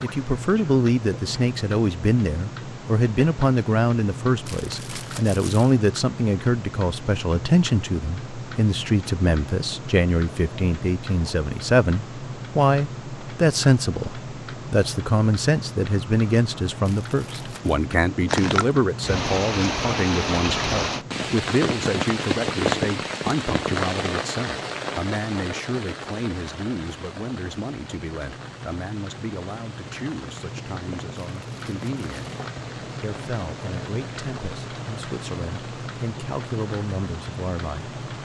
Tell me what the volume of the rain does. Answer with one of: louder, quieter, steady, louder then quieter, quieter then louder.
quieter.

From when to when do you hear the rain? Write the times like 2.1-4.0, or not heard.
18.2-38.1.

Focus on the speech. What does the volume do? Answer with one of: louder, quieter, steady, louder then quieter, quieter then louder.
quieter.